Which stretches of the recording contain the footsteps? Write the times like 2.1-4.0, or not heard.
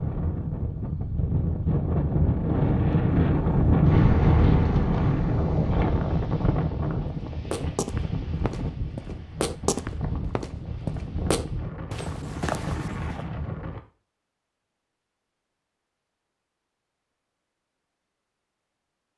7.3-13.2.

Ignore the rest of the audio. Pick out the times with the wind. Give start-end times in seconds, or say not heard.
0.0-13.8.